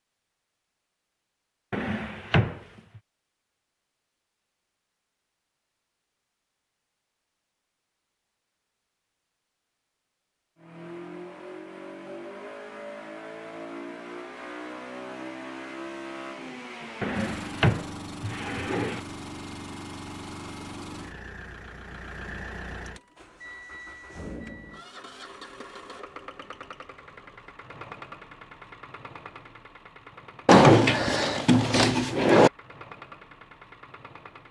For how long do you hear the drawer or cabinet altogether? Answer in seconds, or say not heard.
5 s.